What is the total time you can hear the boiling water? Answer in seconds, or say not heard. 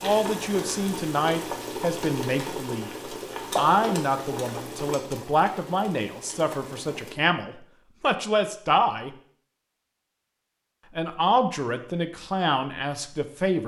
7 s.